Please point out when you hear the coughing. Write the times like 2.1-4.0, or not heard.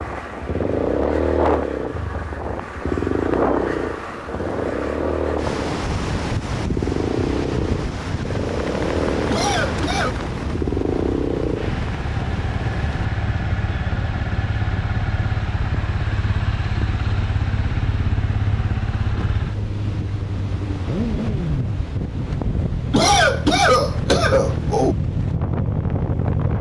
9.3-10.2, 22.9-24.9.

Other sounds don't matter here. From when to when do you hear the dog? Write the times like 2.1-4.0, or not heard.
not heard.